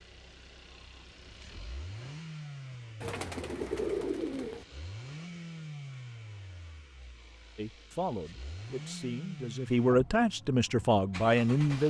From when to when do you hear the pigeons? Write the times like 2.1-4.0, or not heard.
3.0-4.7.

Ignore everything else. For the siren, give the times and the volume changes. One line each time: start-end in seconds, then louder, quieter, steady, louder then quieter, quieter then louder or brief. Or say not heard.
not heard.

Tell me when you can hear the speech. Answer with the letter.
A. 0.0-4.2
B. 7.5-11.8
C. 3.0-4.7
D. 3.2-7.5
B.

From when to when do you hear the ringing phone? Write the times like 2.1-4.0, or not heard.
not heard.